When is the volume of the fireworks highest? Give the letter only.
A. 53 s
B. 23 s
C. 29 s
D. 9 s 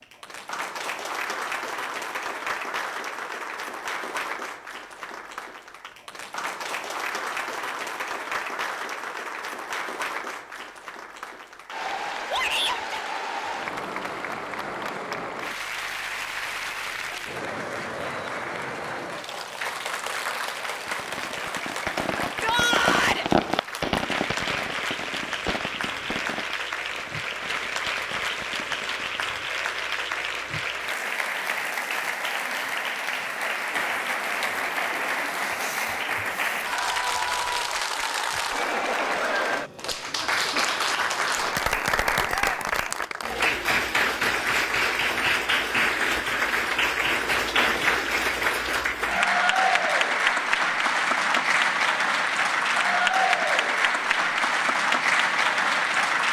B.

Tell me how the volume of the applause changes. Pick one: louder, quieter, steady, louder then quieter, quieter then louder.
louder.